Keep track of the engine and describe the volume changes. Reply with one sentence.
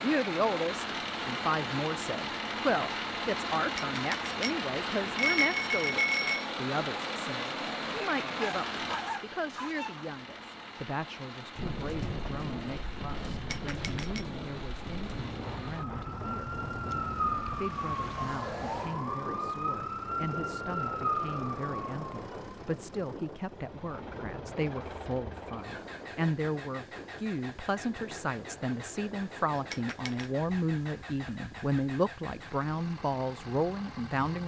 The loudness of the engine goes down.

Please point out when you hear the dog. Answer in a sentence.
The dog can be heard from 8.3 to 10.1 s.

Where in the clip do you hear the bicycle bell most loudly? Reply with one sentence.
The loudest moment of the bicycle bell is at 5 seconds.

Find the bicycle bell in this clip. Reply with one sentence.
You can hear the bicycle bell from 3.8 to 6.5 s, from 13.5 to 14.2 s and from 29.7 to 30.2 s.